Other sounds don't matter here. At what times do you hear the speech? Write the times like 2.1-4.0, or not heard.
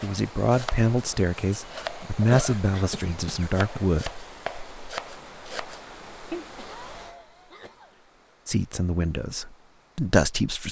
0.0-4.2, 8.4-10.6.